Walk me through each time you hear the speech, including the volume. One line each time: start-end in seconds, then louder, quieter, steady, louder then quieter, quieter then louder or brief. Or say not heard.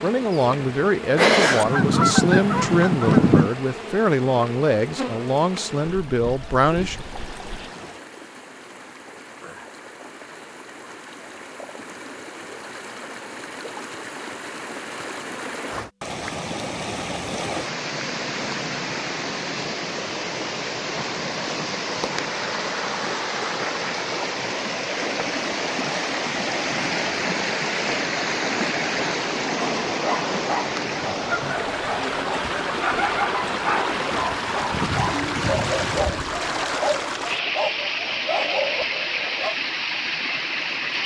0.0-7.0 steady.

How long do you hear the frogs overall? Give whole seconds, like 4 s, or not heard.
not heard.